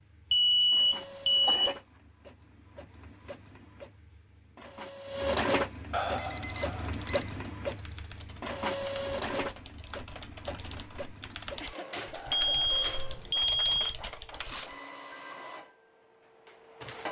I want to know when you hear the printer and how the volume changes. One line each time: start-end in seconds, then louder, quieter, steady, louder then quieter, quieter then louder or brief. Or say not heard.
0.0-17.0 louder then quieter.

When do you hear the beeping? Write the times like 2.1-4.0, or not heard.
0.3-1.8, 5.9-7.3, 12.3-13.9.